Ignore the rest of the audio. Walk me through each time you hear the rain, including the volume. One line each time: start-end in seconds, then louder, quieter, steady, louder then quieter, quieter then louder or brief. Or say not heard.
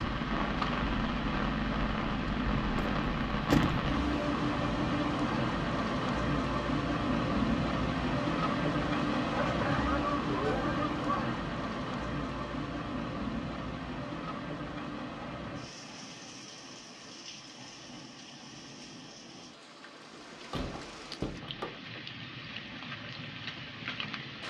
0.0-24.4 quieter.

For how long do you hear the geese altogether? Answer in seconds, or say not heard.
2 s.